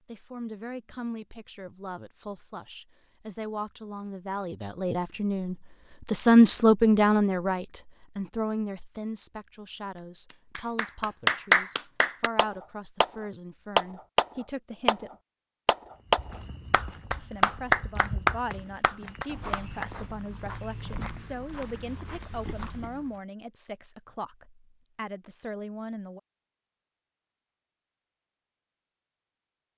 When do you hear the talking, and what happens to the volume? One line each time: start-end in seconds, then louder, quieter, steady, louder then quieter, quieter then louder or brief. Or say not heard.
0.1-15.2 louder then quieter
17.1-26.2 steady.